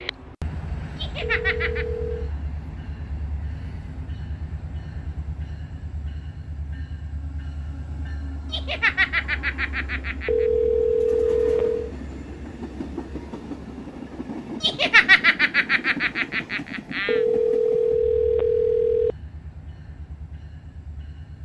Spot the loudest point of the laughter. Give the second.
15 s.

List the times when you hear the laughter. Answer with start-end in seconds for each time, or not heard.
0.9-1.9, 8.5-10.4, 14.6-17.2.